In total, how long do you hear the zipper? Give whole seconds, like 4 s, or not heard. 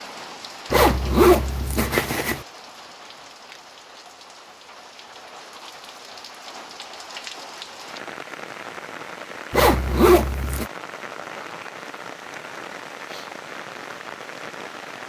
3 s.